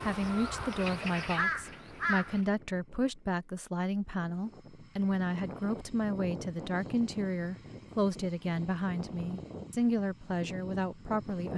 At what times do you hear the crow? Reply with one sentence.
You can hear the crow from 0.0 to 2.5 s.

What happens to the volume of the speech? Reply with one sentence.
The loudness of the speech stays about the same.